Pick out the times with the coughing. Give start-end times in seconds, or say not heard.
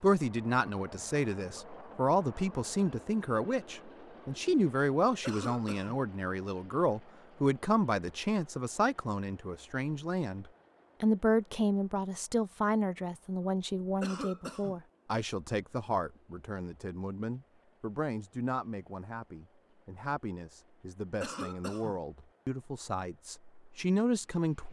5.2-6.0, 14.0-14.8, 21.2-22.0.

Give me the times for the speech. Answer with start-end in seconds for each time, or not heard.
0.0-24.6.